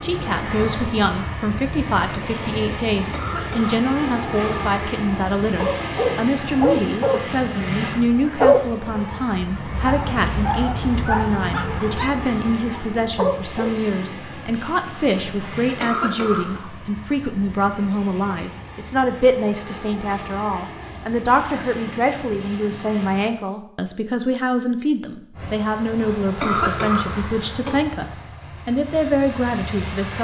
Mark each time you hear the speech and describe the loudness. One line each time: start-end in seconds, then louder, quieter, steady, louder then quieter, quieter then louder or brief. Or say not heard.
0.0-30.1 steady.